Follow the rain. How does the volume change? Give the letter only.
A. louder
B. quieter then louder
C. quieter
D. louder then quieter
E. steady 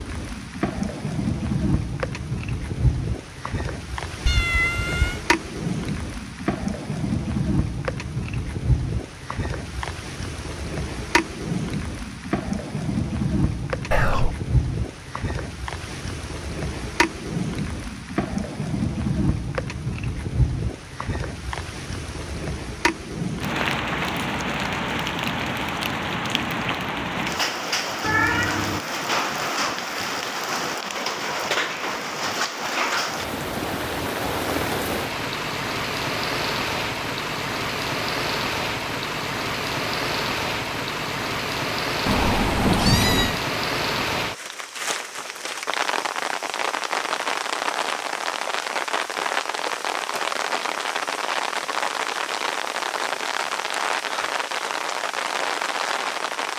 E.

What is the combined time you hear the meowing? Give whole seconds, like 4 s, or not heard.
3 s.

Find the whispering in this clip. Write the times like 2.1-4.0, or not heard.
13.9-14.3.